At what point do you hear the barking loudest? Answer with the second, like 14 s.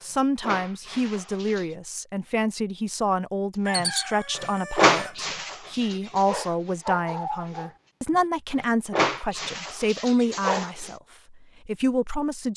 5 s.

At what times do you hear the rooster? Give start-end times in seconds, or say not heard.
3.6-5.2.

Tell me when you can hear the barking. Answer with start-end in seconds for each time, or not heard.
0.0-1.6, 3.8-10.9.